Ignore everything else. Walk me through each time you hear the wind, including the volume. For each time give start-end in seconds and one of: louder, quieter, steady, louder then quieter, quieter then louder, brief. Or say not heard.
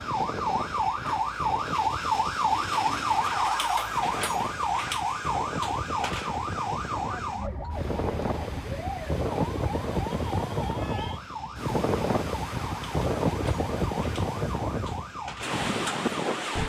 0.0-16.6 louder.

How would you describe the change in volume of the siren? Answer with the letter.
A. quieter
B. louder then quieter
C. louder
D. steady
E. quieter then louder
A.